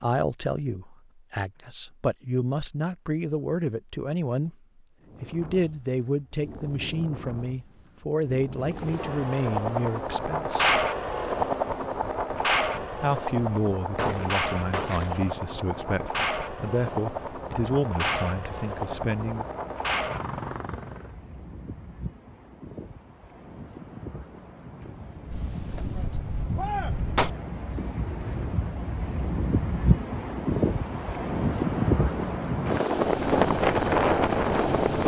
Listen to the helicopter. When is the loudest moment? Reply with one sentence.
The volume of the helicopter peaks at 11 seconds.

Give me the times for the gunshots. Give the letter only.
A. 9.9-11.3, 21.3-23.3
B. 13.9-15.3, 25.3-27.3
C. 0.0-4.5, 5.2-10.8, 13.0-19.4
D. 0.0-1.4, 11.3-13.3
B.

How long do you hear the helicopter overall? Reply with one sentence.
The helicopter can be heard for 15 seconds in total.